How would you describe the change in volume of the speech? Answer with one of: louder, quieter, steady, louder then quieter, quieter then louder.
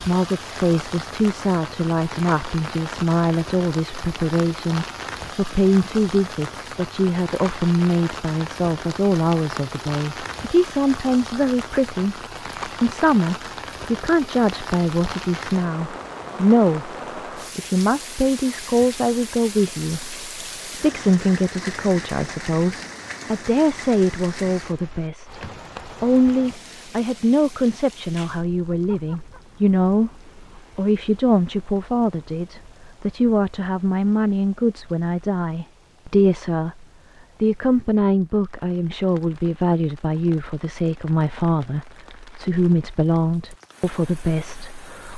steady.